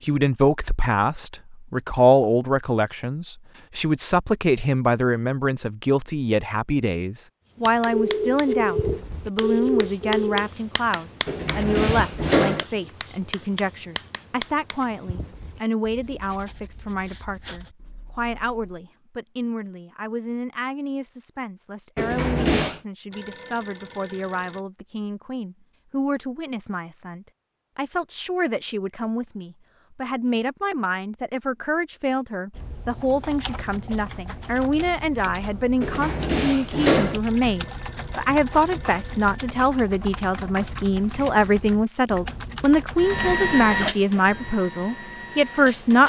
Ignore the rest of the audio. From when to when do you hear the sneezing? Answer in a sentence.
The sneezing can't be heard in this clip.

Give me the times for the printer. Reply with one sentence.
You can hear the printer from 43.0 to 46.0 s.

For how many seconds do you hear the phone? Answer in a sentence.
You can hear the phone for 6 seconds altogether.